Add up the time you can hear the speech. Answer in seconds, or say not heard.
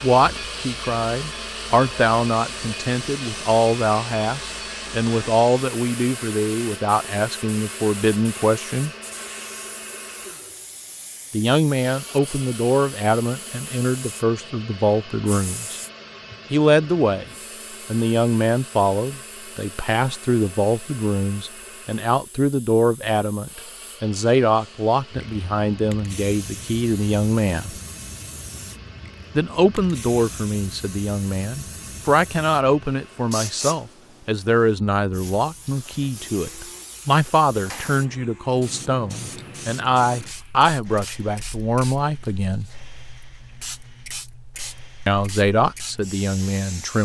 39 s.